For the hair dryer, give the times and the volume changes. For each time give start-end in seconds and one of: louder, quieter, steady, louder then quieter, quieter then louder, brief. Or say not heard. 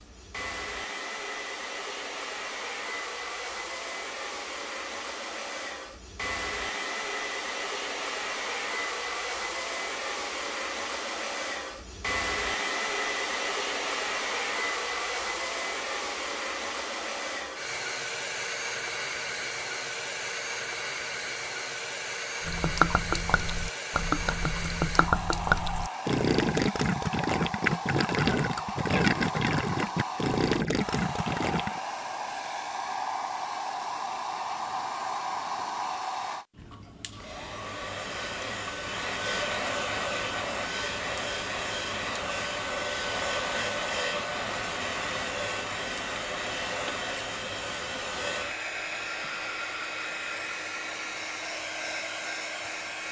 0.0-53.0 steady.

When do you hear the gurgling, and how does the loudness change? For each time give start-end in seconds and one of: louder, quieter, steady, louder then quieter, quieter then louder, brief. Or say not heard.
22.4-31.8 steady.